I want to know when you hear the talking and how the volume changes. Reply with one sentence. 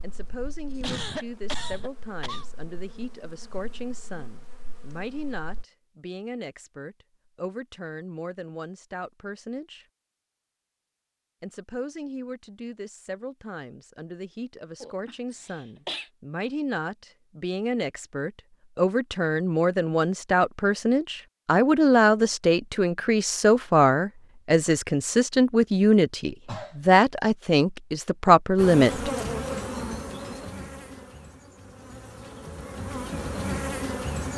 The talking can be heard from 0.0 to 9.8 s, at a steady volume; and from 11.4 to 29.1 s, getting louder.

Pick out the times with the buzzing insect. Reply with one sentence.
The buzzing insect can be heard from 0.0 to 5.7 s and from 28.6 to 34.3 s.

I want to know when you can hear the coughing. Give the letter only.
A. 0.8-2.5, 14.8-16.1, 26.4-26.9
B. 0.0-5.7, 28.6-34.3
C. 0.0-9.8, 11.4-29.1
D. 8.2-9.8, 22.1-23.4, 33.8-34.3
A.